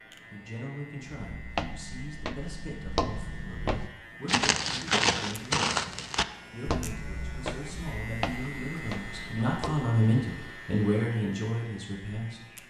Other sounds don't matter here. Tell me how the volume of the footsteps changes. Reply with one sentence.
The loudness of the footsteps goes up, then down.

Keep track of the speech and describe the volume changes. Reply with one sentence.
The volume of the speech goes up.